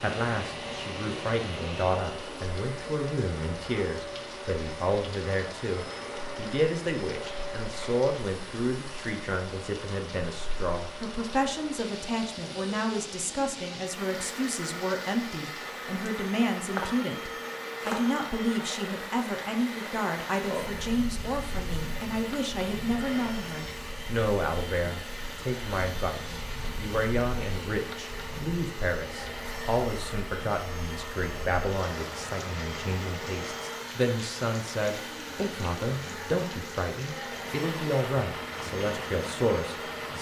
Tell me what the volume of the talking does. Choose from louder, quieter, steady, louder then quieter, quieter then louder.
steady.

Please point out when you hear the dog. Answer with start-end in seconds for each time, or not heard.
not heard.